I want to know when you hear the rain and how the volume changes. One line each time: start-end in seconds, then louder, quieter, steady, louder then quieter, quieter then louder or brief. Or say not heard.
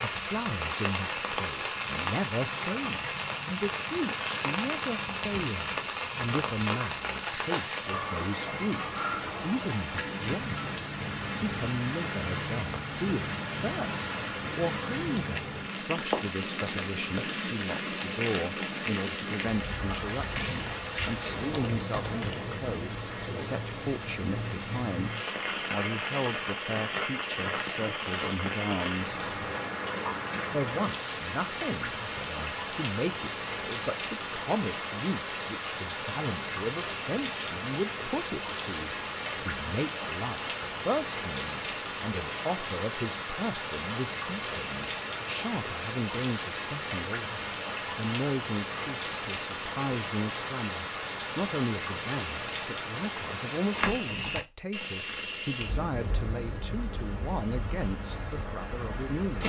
0.0-59.4 steady.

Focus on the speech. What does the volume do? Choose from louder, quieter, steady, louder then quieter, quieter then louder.
steady.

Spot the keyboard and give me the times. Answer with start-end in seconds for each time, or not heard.
20.2-22.6.